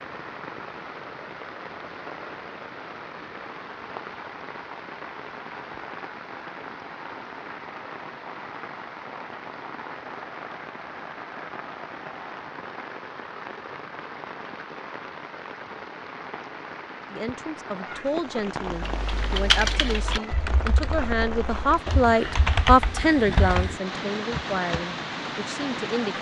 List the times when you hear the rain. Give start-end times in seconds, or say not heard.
0.0-26.1.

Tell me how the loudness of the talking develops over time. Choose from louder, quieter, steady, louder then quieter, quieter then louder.
louder then quieter.